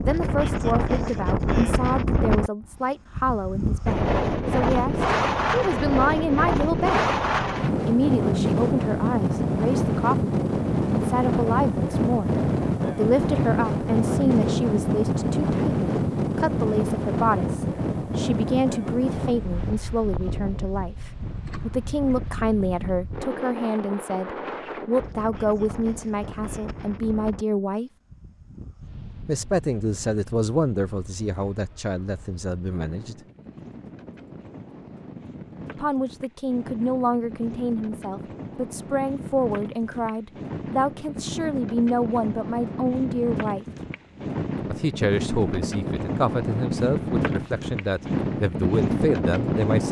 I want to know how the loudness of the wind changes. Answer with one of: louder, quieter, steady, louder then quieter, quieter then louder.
quieter then louder.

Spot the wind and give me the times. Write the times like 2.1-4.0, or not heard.
0.0-49.8.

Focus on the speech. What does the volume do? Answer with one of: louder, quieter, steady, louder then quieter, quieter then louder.
steady.